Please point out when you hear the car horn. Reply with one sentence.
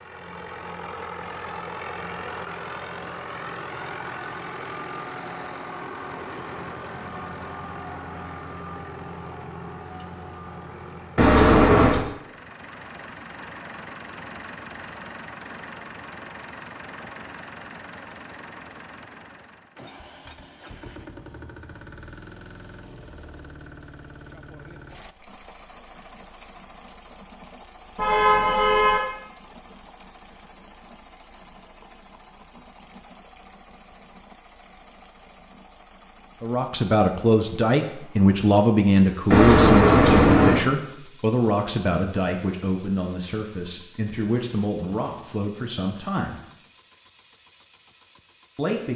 You can hear the car horn from 11.2 to 12.1 s, from 27.9 to 29.0 s and from 39.3 to 40.6 s.